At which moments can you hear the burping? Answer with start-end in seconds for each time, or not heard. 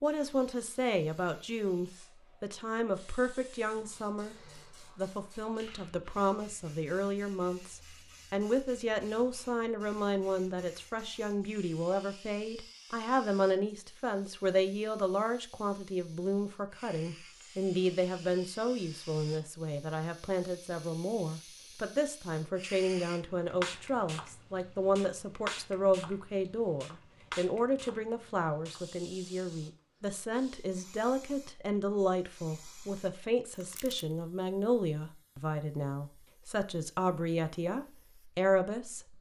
not heard.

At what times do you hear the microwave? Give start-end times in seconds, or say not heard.
not heard.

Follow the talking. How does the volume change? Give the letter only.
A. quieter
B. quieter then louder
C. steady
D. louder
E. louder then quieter
C.